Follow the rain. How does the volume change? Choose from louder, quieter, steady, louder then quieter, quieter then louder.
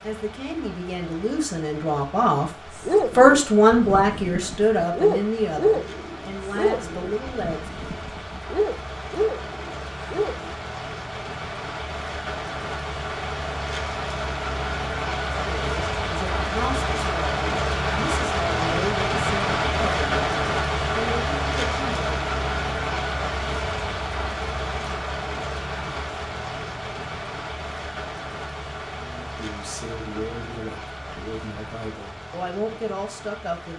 louder then quieter.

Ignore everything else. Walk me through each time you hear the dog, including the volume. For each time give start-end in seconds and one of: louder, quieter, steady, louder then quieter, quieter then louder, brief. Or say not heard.
2.8-10.6 louder then quieter.